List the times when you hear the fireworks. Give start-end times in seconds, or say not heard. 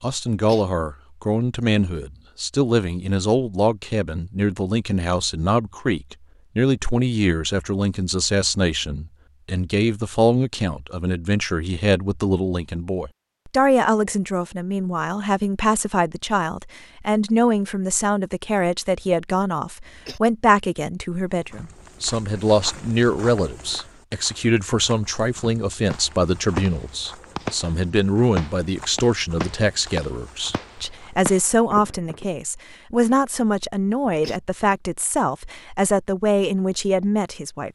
25.9-32.2.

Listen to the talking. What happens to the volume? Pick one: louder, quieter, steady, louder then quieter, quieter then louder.
steady.